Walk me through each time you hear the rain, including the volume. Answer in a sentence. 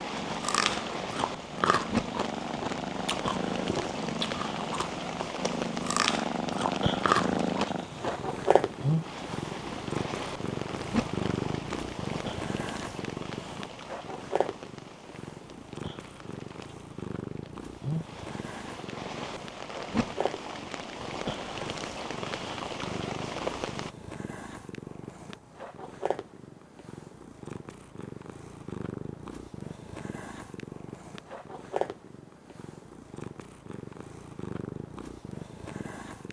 You can hear the rain from 0.0 to 23.9 s, getting quieter then louder.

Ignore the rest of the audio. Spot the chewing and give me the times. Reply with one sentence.
The chewing can be heard from 0.2 to 8.3 s.